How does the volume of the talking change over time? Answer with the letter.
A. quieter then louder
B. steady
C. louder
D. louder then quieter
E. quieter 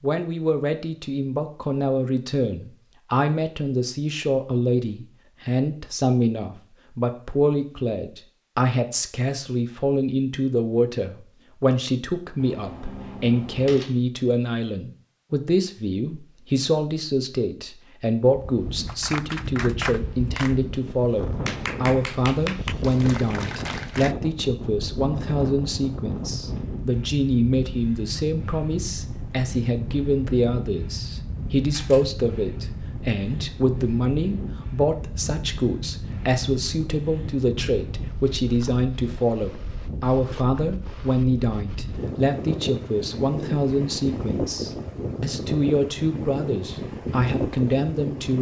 B.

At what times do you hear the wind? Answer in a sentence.
The wind can be heard from 18.3 to 48.3 s.